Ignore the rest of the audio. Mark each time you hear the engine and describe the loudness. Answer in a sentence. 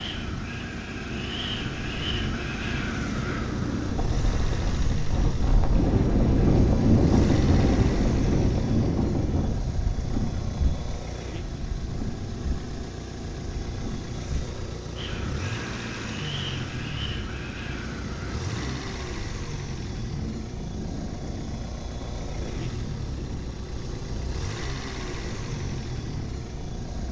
The engine can be heard from 0.0 to 27.0 s, at a steady volume.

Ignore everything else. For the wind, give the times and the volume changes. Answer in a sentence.
You can hear the wind from 0.0 to 27.0 s, getting louder then quieter.